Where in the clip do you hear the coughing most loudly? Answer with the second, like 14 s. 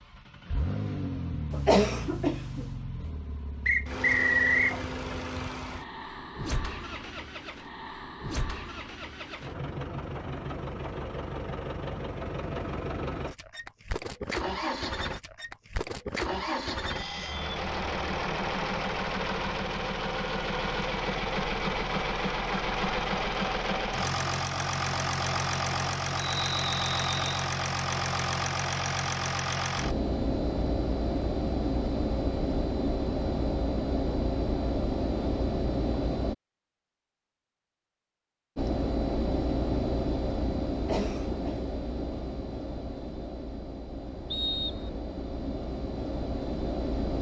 2 s.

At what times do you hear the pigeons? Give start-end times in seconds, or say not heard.
not heard.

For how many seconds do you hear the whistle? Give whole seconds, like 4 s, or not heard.
3 s.